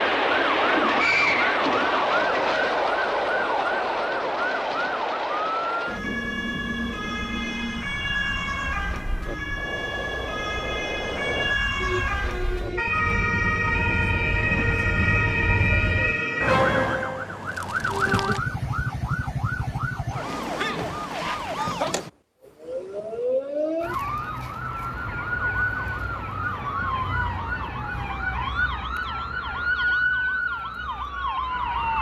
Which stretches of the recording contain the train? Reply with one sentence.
The train can be heard from 0.0 to 16.1 s.